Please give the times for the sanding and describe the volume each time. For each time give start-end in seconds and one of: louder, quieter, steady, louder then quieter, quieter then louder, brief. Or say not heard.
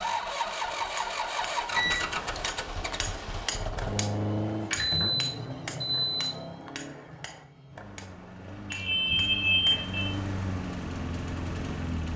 not heard.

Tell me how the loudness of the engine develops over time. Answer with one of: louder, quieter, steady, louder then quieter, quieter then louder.
quieter then louder.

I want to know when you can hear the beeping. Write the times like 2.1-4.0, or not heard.
1.8-2.5, 4.7-6.3, 8.7-10.1.